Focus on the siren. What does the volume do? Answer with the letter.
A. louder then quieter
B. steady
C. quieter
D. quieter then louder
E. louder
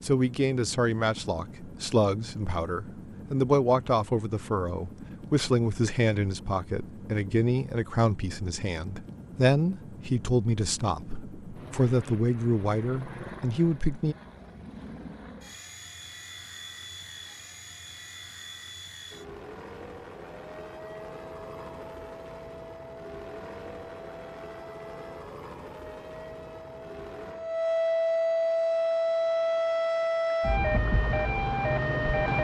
E.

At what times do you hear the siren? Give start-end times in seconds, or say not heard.
20.4-32.4.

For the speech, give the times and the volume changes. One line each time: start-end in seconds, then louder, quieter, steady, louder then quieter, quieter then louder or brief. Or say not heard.
0.0-14.2 steady.